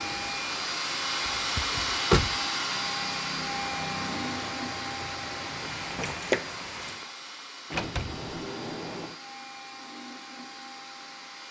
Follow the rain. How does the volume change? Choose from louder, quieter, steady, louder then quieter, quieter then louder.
louder.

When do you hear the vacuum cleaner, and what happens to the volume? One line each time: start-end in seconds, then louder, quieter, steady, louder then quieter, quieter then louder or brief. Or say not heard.
0.0-11.4 quieter.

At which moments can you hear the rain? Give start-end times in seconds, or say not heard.
0.0-7.1.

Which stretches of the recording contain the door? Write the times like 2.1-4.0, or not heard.
1.6-2.4, 7.7-9.2.